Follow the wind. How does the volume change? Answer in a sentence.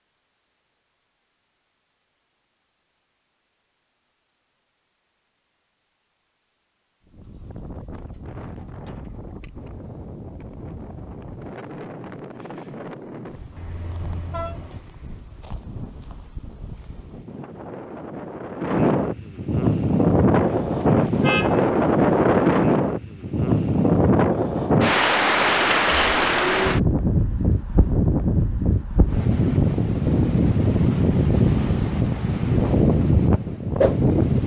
The loudness of the wind goes up.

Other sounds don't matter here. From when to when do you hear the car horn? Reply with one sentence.
You can hear the car horn from 13.6 to 14.8 s and from 20.4 to 21.7 s.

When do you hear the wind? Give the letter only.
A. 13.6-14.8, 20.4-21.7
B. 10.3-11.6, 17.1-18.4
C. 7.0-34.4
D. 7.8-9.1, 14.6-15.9
C.